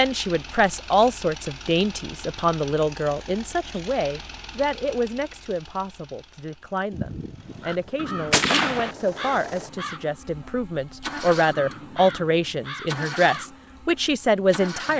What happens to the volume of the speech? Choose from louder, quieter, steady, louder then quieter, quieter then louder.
quieter then louder.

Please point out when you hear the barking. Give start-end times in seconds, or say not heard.
not heard.